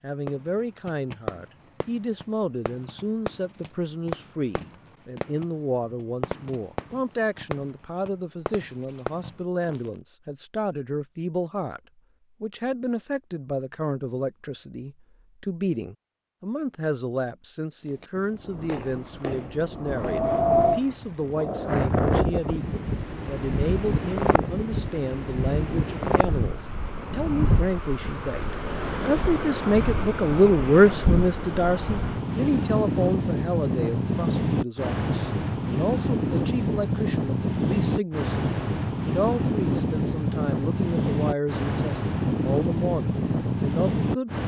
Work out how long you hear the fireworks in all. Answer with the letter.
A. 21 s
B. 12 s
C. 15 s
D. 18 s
B.